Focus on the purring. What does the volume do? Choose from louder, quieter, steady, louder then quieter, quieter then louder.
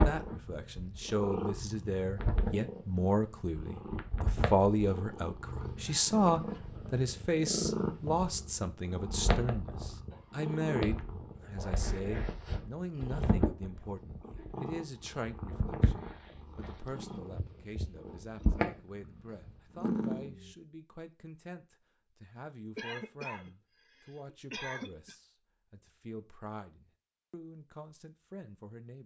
steady.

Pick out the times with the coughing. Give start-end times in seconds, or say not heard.
5.8-7.0, 9.9-10.4, 22.8-25.1.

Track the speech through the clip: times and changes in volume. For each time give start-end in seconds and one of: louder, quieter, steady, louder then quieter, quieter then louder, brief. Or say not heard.
0.0-29.0 quieter.